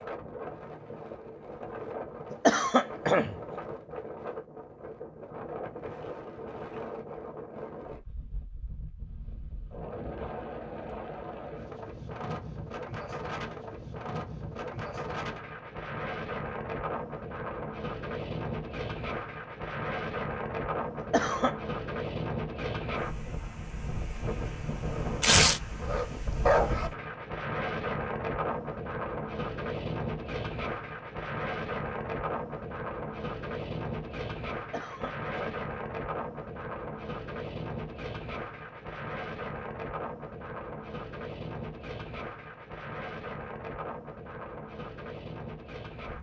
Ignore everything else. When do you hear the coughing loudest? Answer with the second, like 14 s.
3 s.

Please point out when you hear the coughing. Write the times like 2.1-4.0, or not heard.
2.3-3.5, 20.9-21.6, 34.5-35.6.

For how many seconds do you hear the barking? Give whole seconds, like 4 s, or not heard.
2 s.